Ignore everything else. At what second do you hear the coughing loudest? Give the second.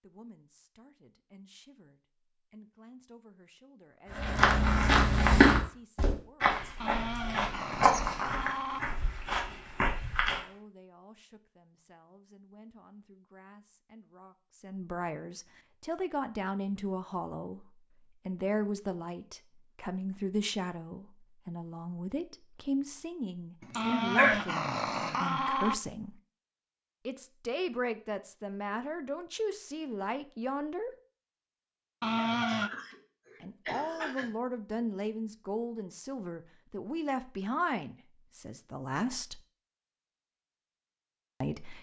24 s.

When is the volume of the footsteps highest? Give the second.
5 s.